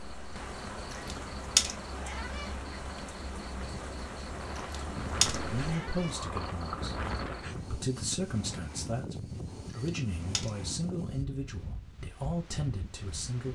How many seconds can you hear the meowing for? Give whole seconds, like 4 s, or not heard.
4 s.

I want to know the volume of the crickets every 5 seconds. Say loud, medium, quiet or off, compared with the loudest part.
loud, loud, off.